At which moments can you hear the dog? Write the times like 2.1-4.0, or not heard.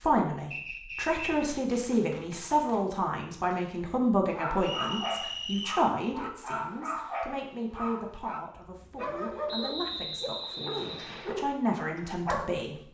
4.3-12.7.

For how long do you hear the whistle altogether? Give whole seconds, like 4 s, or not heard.
4 s.